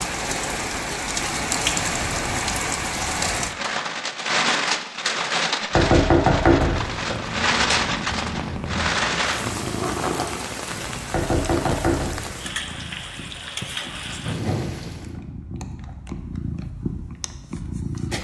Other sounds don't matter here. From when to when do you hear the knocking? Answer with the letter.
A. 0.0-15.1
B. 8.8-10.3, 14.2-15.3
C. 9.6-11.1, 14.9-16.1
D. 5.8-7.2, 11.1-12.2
D.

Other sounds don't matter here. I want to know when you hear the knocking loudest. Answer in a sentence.
The loudest moment of the knocking is at 6 seconds.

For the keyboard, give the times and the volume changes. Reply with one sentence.
The keyboard can't be heard in this clip.